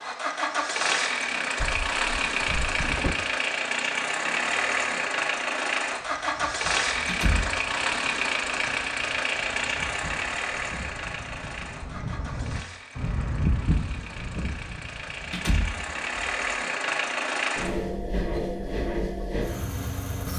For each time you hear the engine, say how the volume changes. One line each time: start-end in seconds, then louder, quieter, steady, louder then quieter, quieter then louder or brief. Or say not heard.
0.0-20.3 quieter then louder.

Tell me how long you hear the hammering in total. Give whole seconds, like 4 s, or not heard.
not heard.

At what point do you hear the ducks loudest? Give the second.
14 s.